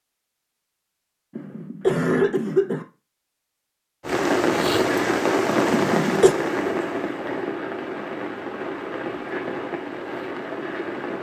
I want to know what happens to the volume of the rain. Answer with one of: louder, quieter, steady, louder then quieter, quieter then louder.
quieter.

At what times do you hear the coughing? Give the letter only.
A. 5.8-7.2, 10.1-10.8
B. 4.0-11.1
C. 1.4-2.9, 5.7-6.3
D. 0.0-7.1
C.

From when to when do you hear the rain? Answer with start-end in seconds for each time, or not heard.
4.0-11.1.